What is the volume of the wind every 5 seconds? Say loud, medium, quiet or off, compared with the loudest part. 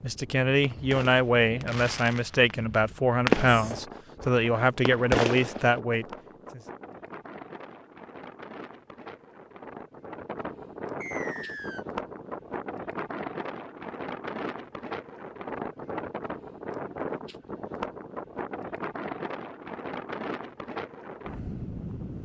medium, medium, loud, loud, loud.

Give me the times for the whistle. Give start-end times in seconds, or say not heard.
11.0-11.8.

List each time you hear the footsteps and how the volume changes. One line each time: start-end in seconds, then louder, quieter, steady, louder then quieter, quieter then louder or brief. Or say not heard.
not heard.